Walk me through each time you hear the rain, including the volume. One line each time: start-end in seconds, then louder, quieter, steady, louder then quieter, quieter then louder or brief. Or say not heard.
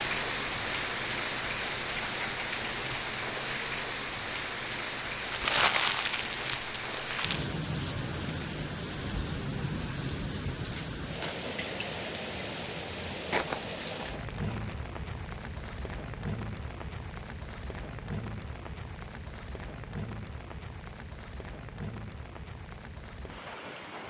0.0-24.0 quieter.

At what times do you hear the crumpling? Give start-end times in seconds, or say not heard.
5.2-7.5, 13.3-14.8.